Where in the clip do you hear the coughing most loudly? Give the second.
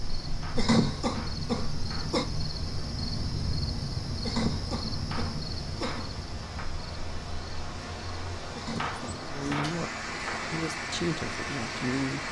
1 s.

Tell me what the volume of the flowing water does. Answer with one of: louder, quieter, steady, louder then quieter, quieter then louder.
louder.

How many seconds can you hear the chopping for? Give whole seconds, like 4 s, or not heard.
5 s.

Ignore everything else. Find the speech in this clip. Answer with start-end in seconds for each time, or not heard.
9.3-12.2.